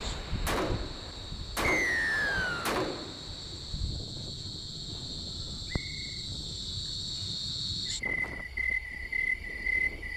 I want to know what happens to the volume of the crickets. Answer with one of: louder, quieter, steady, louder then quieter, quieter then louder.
louder.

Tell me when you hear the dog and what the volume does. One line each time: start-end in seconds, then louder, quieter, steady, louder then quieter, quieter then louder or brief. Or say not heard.
not heard.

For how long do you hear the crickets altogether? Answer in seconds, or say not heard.
10 s.